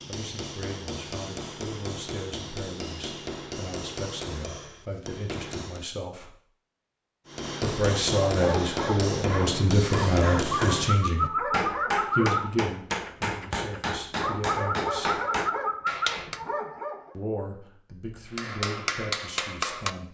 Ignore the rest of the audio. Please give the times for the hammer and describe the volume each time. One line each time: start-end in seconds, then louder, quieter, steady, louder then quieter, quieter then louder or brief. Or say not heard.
0.0-5.9 steady
7.2-16.4 steady
18.3-19.9 brief.